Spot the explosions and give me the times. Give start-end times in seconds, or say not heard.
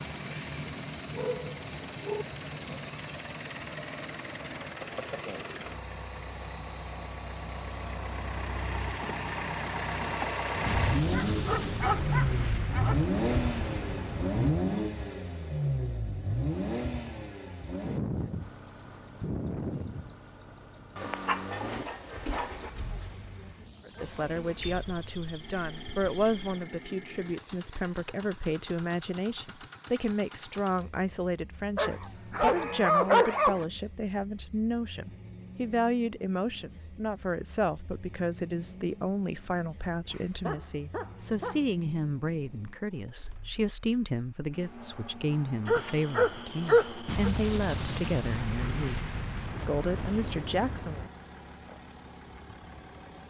10.7-14.6, 47.0-51.1.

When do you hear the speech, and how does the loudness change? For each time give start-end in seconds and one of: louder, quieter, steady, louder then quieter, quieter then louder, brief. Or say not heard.
23.9-51.0 steady.